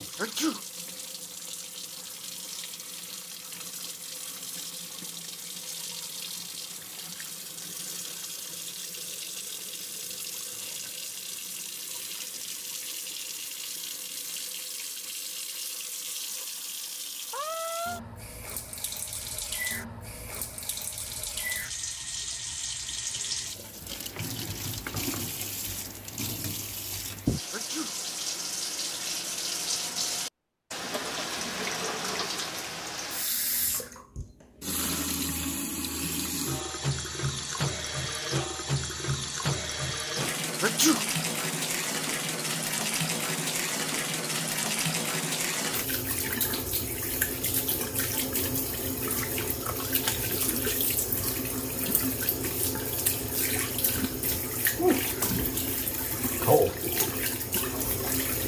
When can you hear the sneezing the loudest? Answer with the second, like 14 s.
41 s.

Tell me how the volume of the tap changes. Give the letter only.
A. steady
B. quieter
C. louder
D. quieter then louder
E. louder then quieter
C.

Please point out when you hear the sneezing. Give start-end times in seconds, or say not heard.
0.1-0.6, 27.5-27.9, 40.6-41.0.